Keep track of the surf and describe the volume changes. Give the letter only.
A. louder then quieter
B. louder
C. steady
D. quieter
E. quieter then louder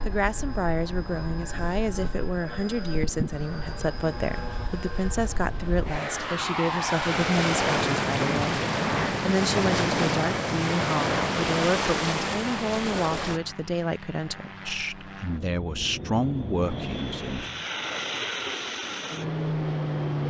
B.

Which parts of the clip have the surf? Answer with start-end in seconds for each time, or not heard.
0.0-13.4.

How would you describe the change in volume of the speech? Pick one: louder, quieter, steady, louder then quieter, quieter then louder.
steady.